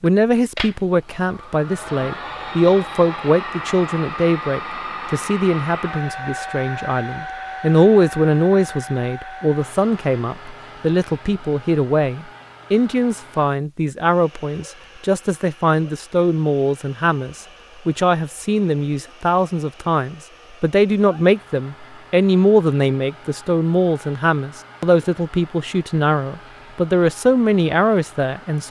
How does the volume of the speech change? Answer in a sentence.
The loudness of the speech stays about the same.